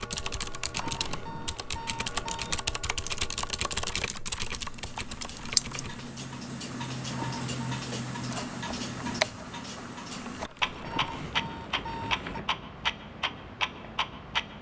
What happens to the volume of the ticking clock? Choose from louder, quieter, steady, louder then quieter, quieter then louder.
louder.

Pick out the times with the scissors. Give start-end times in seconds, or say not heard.
5.2-5.8.